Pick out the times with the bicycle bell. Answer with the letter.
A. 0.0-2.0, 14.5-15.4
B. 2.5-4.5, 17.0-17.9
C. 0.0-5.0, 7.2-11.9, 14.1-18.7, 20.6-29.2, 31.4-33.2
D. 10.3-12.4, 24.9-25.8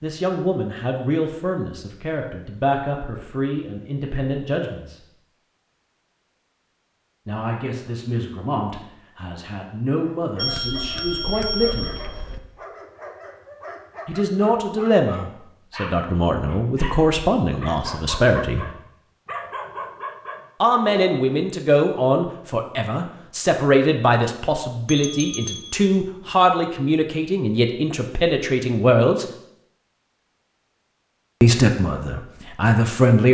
D.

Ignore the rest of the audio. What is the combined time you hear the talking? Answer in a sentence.
You can hear the talking for 25 seconds altogether.